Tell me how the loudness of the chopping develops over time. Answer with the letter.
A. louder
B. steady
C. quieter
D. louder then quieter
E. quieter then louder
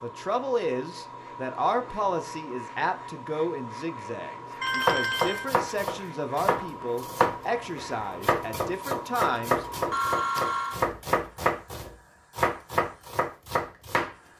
B.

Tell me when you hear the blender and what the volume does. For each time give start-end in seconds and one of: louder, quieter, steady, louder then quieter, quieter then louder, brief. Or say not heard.
not heard.